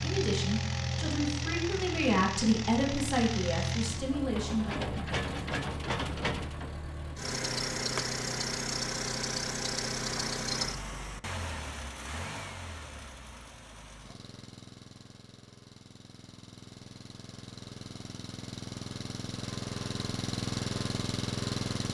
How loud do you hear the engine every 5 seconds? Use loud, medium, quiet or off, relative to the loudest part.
loud, loud, medium, medium, loud.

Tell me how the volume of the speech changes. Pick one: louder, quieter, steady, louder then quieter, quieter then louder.
louder then quieter.